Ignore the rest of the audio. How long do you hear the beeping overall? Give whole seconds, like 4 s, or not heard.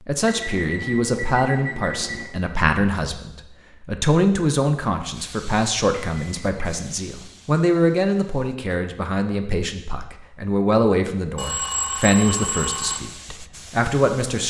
4 s.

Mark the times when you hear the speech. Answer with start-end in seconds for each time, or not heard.
0.1-14.4.